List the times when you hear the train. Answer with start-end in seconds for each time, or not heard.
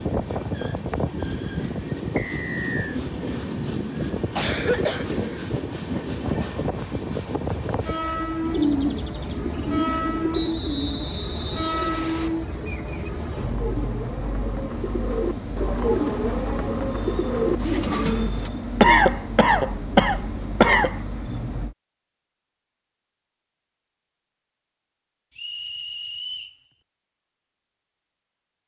0.0-21.8.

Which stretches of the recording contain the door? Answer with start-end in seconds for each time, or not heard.
not heard.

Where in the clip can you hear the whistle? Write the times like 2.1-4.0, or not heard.
2.1-3.0, 10.3-12.3, 25.4-26.6.